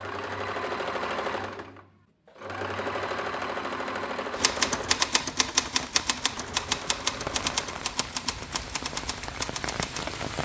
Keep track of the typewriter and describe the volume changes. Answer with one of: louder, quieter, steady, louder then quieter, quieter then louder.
quieter.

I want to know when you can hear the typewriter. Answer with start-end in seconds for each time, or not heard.
4.3-10.2.